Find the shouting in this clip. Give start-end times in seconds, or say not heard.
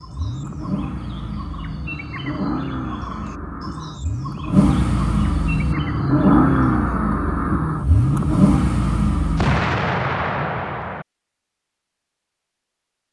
not heard.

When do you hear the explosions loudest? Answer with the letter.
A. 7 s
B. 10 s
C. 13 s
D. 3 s
B.